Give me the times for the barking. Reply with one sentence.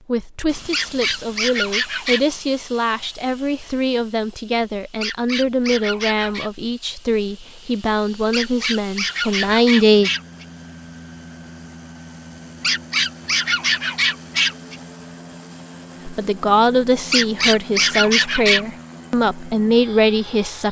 The barking can be heard from 0.7 to 2.2 s, from 5.0 to 6.5 s, from 8.3 to 10.4 s, from 12.6 to 14.8 s and from 17.1 to 18.6 s.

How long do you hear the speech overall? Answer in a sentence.
You can hear the speech for 15 seconds altogether.